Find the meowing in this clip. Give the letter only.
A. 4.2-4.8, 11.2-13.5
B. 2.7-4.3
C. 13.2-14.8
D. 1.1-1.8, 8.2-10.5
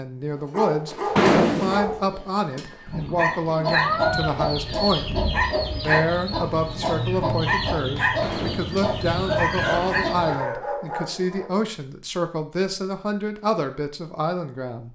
B.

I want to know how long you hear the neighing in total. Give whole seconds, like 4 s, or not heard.
3 s.